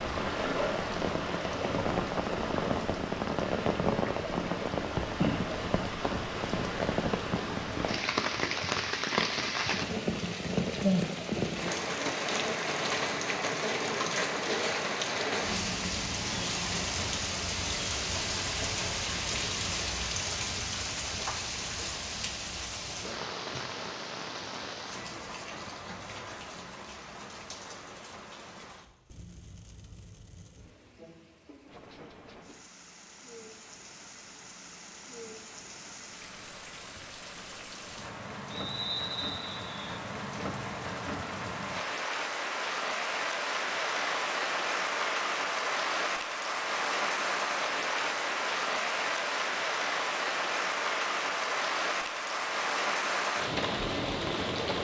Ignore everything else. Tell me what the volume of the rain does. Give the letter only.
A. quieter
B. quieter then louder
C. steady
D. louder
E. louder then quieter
B.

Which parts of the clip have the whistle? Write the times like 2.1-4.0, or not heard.
38.5-39.9.